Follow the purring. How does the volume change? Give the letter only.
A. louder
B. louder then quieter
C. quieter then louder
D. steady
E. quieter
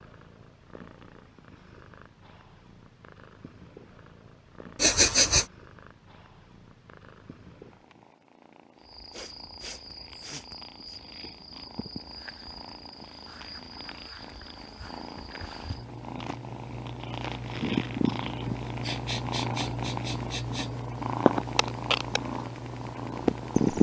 A.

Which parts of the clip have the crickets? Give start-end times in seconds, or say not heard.
8.8-23.7.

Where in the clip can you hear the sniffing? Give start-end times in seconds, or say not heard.
4.8-5.5, 9.1-11.0, 18.8-20.7.